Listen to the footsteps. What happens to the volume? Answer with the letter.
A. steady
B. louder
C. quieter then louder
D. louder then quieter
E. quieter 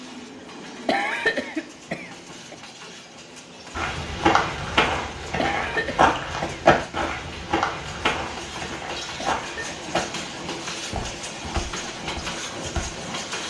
E.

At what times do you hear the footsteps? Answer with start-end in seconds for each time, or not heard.
3.8-12.8.